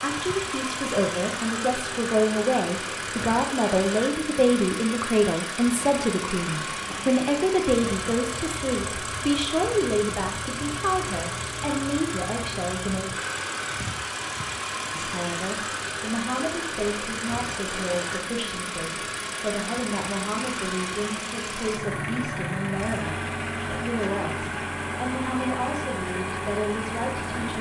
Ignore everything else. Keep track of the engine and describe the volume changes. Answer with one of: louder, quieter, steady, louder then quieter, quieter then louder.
steady.